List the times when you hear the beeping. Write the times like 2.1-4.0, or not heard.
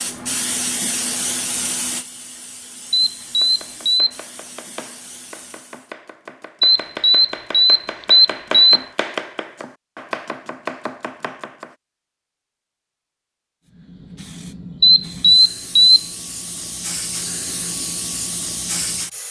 2.9-4.1, 6.6-8.8, 14.8-16.0.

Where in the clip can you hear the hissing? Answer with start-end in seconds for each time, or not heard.
0.0-5.9, 13.7-19.2.